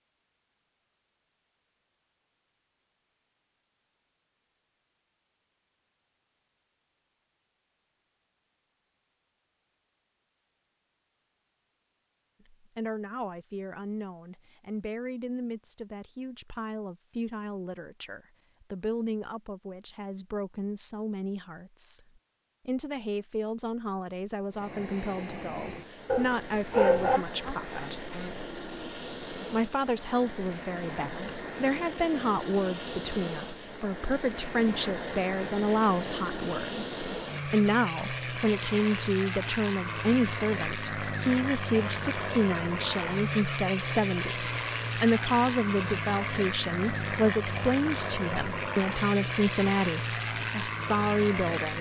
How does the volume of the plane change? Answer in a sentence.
The volume of the plane goes up.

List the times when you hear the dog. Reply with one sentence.
The dog can be heard from 26.1 to 27.2 s.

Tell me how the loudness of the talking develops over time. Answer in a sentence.
The loudness of the talking goes up.